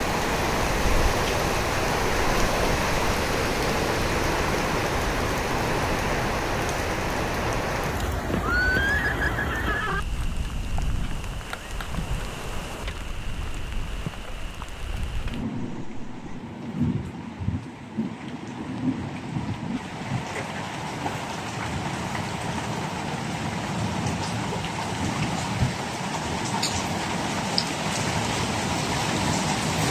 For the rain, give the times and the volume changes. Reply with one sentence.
You can hear the rain from 0.0 to 29.8 s, getting quieter then louder.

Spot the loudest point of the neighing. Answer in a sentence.
The volume of the neighing peaks at 9 seconds.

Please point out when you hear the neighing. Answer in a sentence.
The neighing can be heard from 8.4 to 10.0 s and from 15.8 to 16.4 s.